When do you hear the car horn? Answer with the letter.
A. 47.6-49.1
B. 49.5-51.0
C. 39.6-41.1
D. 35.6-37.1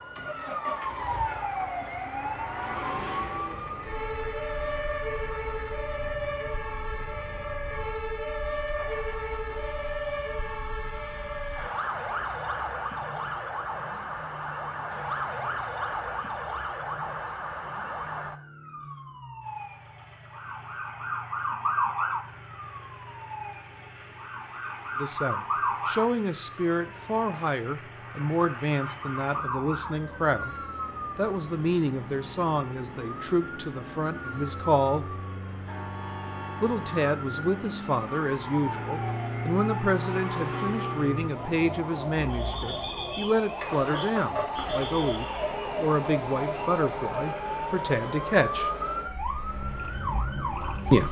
D.